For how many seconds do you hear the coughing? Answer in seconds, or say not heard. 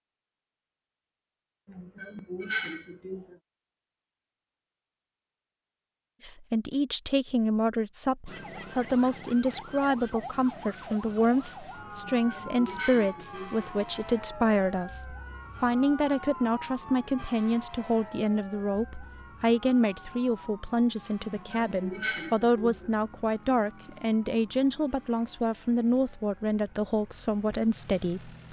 5 s.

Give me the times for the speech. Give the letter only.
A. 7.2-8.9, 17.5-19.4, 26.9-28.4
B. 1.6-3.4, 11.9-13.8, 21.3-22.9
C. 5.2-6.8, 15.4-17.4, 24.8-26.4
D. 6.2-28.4
D.